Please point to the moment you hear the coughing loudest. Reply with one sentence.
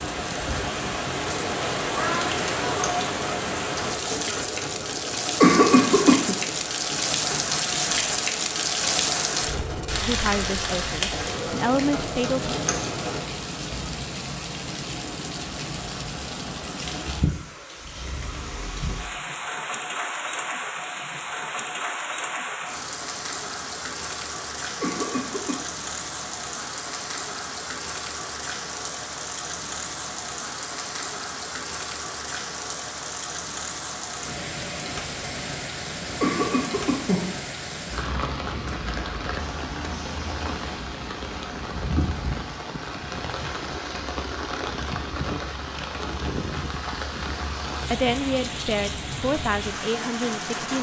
The volume of the coughing peaks at 6 seconds.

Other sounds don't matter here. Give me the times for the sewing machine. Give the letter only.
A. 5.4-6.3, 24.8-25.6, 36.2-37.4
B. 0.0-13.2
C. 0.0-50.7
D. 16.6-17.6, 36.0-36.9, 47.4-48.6
B.